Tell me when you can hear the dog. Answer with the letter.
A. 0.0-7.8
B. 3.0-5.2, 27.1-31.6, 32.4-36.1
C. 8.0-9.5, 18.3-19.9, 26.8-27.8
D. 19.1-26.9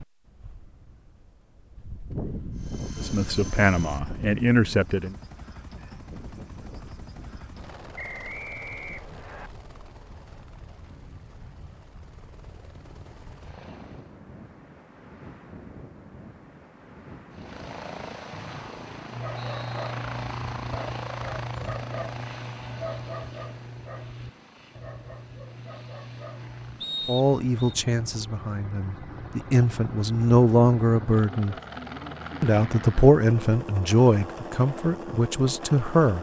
D.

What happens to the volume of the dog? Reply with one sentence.
The loudness of the dog goes down.